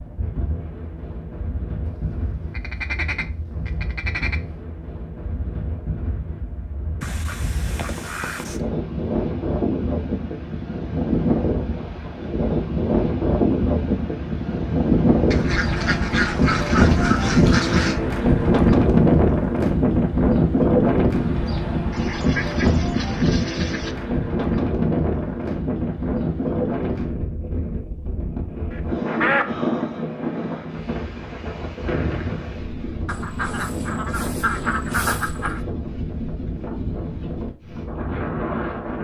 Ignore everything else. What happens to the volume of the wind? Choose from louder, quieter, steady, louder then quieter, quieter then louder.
louder then quieter.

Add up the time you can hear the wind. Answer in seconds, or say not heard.
39 s.